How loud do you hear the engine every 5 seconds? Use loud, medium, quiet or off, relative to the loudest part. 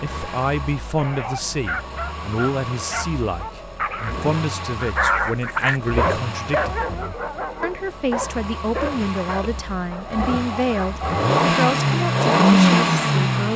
quiet, quiet, loud.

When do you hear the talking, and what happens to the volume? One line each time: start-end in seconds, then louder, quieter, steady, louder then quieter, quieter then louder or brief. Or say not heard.
0.0-13.5 steady.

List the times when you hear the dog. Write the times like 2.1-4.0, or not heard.
0.9-11.3.